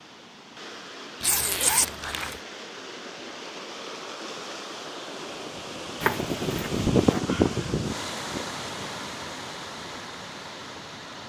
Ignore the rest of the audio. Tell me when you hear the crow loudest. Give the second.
7 s.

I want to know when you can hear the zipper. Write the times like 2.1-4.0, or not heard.
1.2-2.4, 6.0-7.2.